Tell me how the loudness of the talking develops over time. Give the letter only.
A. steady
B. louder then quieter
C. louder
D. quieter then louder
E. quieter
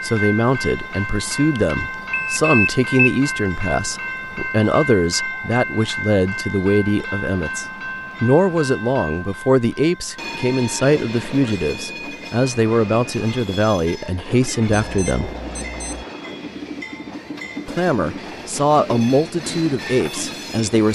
A.